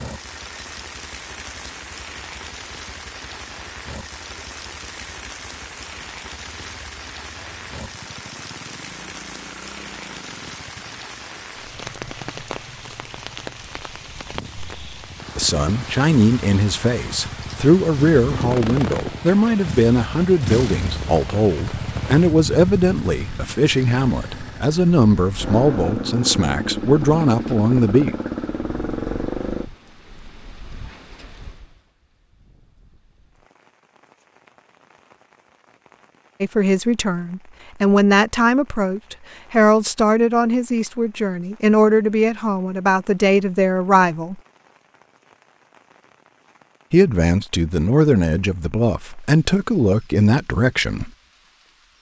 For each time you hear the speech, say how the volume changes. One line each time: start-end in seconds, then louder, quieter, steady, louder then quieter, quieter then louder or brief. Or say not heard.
15.3-28.1 steady
36.4-44.4 steady
46.9-51.1 steady.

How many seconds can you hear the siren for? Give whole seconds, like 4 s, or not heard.
not heard.